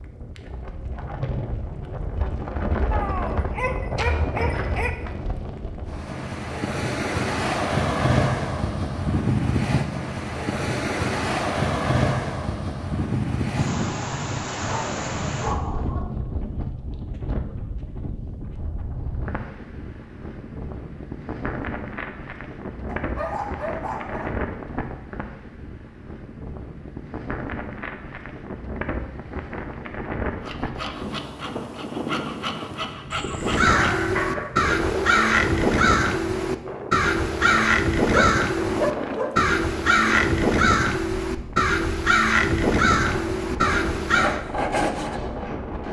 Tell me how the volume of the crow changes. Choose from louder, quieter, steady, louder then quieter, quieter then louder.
steady.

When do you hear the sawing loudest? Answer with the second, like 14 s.
45 s.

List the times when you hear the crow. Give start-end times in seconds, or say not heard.
33.4-44.4.